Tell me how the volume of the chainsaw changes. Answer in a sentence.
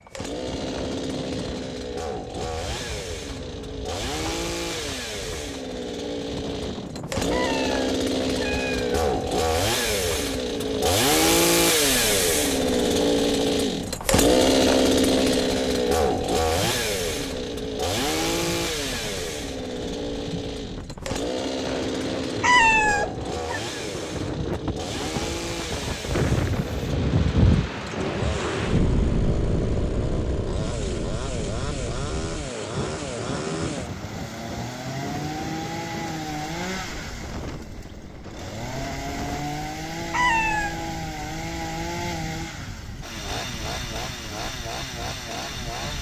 The volume of the chainsaw goes up, then down.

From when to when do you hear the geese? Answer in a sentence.
You can't hear the geese here.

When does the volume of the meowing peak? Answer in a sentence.
The volume of the meowing peaks at 23 seconds.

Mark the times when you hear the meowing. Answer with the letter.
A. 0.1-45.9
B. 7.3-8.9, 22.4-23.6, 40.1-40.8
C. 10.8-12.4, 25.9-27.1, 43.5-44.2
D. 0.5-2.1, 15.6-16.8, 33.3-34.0
B.